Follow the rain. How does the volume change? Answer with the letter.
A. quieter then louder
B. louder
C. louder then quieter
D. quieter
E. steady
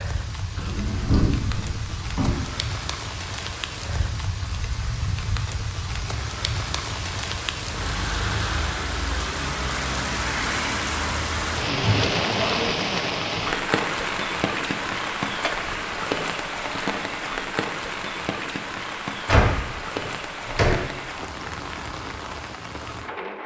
C.